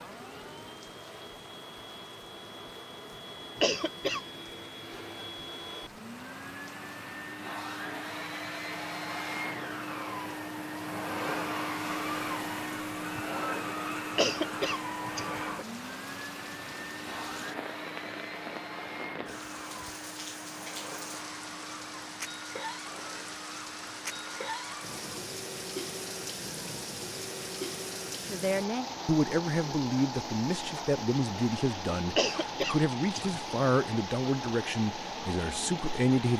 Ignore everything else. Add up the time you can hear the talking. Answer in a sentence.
The talking can be heard for 8 seconds in total.